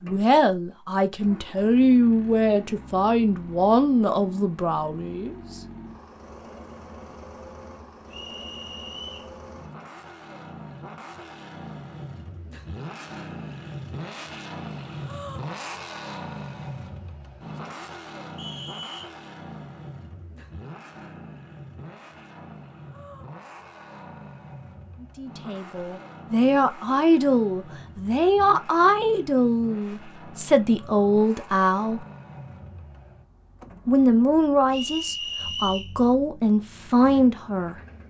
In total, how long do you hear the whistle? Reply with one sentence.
You can hear the whistle for 3 seconds altogether.